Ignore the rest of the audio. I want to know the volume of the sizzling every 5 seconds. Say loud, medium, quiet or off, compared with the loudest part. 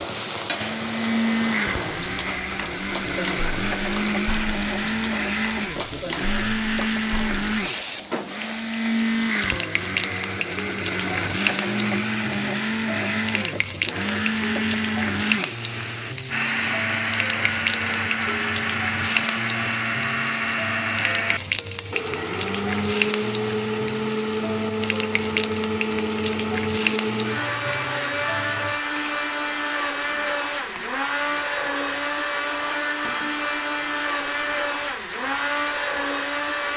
loud, loud, loud, loud, loud, loud, medium, medium.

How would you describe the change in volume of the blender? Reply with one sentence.
The volume of the blender stays about the same.